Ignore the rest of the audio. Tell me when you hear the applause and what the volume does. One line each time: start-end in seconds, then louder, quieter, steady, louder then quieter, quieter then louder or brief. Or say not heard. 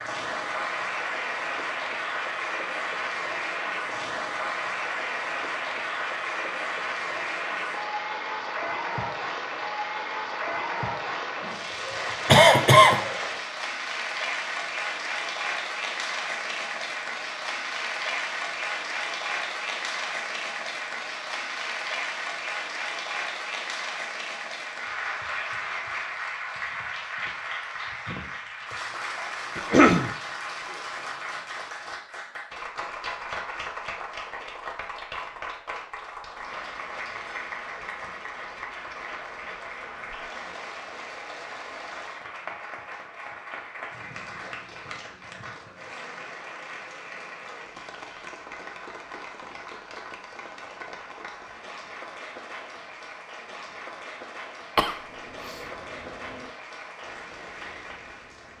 0.0-58.5 quieter.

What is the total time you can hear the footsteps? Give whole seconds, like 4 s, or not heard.
not heard.